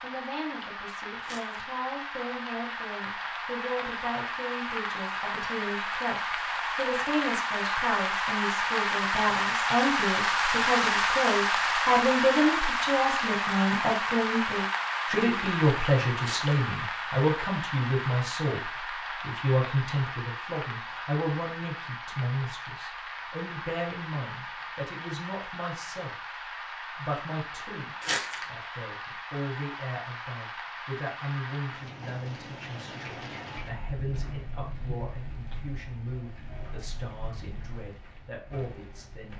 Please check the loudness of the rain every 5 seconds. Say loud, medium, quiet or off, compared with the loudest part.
medium, loud, loud, medium, quiet, quiet, quiet, quiet.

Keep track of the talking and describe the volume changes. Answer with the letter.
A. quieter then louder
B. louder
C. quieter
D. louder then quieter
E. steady
D.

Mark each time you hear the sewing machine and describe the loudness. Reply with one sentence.
You can't hear the sewing machine here.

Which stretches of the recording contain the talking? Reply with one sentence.
You can hear the talking from 0.0 to 26.1 s and from 26.9 to 39.3 s.